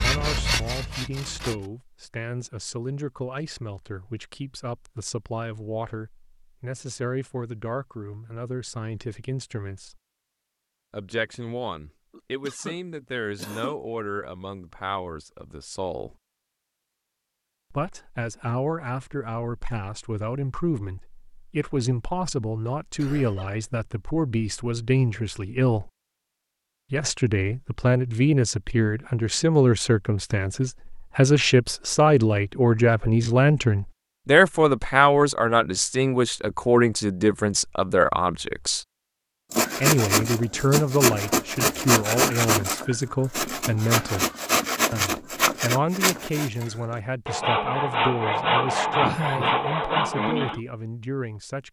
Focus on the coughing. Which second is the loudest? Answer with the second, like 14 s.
49 s.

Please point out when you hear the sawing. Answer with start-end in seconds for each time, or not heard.
0.0-1.6, 39.5-50.6.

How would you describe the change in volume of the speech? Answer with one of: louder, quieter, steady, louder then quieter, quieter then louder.
louder then quieter.